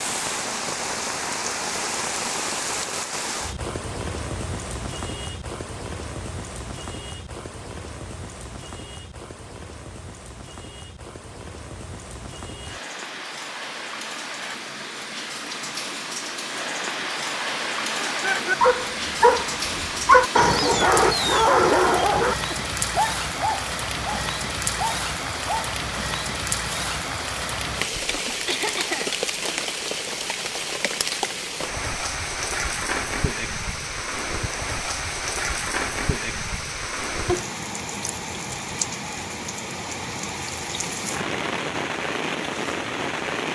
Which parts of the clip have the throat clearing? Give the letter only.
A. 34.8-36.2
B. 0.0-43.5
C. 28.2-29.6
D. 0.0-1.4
C.